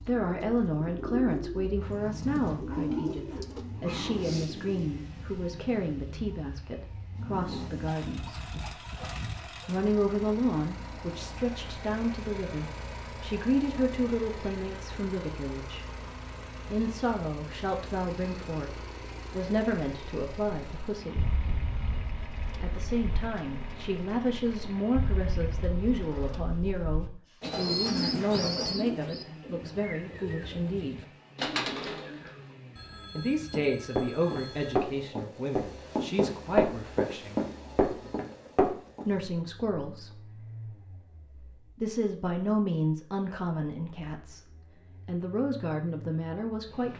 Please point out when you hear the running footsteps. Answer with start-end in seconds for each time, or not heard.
33.1-39.0.